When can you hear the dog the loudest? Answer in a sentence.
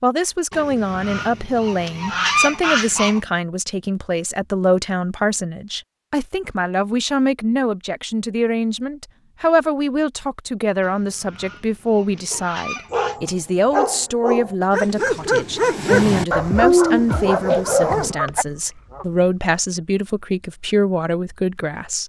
The loudest moment of the dog is at 17 seconds.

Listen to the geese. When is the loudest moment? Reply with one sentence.
The loudest moment of the geese is at 2 seconds.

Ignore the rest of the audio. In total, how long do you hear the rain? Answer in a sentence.
The rain can't be heard in this clip.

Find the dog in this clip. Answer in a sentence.
You can hear the dog from 12.3 to 18.4 s.